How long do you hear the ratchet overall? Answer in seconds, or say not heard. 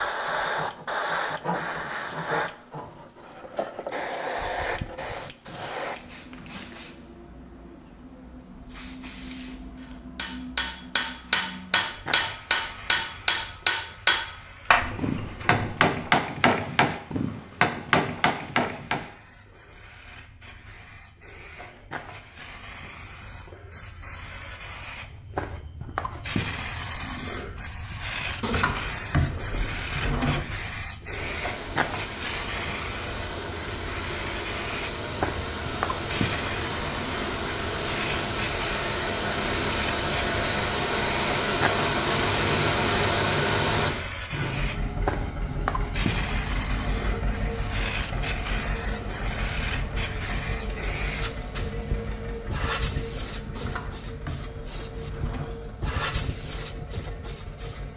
not heard.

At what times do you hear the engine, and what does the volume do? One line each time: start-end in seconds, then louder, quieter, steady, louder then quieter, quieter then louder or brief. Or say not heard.
31.1-57.9 louder then quieter.